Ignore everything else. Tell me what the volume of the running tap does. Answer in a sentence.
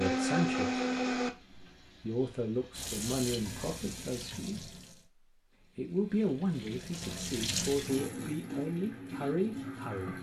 The loudness of the running tap goes down, then up.